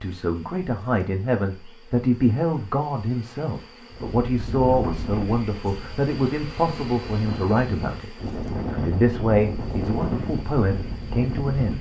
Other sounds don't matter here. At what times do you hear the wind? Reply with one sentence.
The wind can be heard from 3.9 to 11.7 s.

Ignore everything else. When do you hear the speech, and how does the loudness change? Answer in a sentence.
The speech can be heard from 0.0 to 11.7 s, at a steady volume.